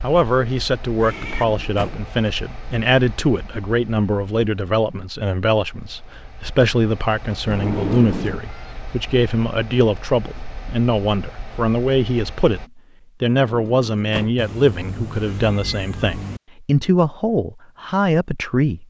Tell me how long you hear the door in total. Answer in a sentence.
The door can be heard for 3 seconds in total.